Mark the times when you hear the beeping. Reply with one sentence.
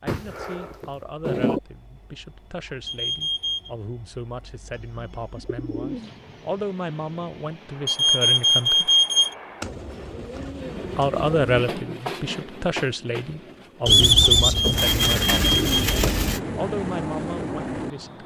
You can hear the beeping from 2.9 to 3.7 s, from 7.8 to 9.3 s and from 14.4 to 15.9 s.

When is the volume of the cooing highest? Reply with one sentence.
The volume of the cooing peaks at 14 seconds.